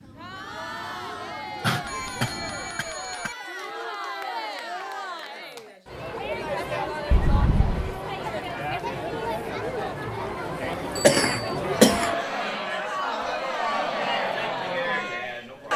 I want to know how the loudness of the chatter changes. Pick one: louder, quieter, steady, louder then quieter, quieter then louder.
louder.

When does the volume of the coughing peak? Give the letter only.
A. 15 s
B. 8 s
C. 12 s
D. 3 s
C.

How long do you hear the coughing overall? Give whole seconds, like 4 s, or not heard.
3 s.